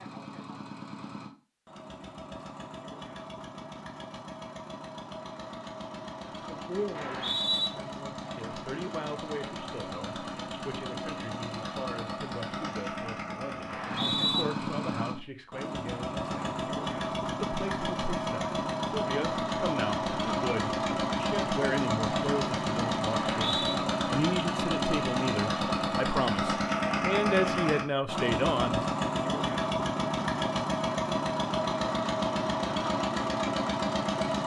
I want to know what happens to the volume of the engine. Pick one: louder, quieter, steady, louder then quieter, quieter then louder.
louder.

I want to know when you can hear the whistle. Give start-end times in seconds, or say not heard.
7.0-7.7, 13.7-14.4, 23.4-23.8.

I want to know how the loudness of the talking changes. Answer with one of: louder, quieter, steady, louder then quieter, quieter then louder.
louder.